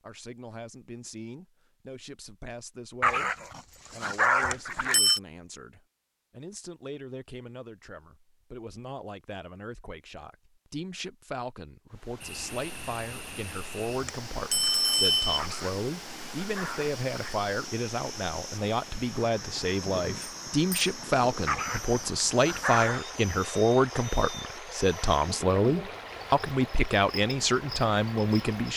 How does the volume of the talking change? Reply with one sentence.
The loudness of the talking goes up.